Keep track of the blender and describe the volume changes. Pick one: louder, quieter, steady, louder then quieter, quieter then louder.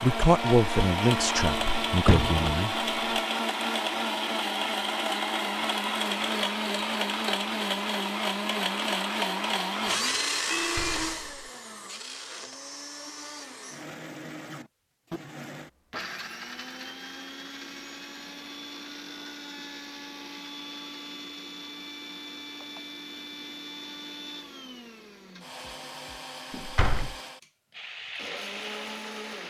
quieter.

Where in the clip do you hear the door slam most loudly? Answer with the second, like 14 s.
2 s.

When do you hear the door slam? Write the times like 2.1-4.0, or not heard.
1.6-2.5, 10.5-11.5, 26.5-27.1.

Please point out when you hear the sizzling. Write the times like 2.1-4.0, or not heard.
27.7-29.4.